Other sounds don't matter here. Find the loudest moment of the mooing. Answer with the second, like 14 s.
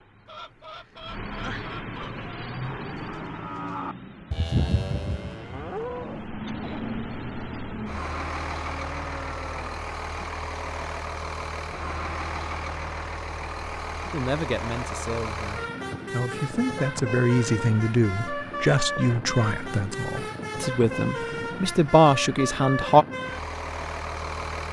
5 s.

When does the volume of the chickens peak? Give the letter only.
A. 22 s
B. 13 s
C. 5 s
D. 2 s
D.